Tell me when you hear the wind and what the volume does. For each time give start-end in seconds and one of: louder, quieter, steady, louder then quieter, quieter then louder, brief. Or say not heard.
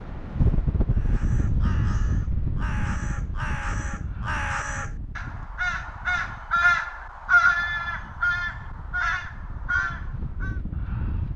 0.0-11.3 quieter then louder.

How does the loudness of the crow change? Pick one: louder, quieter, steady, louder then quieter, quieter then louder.
louder then quieter.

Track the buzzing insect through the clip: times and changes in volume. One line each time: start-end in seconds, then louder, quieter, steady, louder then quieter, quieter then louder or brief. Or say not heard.
not heard.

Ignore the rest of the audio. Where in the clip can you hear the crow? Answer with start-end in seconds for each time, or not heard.
0.9-10.6.